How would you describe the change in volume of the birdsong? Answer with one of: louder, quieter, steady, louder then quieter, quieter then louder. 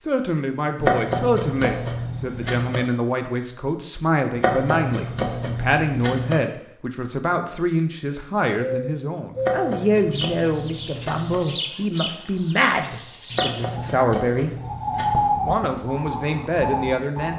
louder then quieter.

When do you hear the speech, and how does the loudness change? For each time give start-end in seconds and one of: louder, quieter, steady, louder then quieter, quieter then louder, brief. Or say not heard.
0.1-14.5 steady
15.4-17.3 brief.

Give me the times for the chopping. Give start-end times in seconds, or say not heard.
0.8-2.8, 4.3-6.3, 9.3-11.3, 13.3-15.2.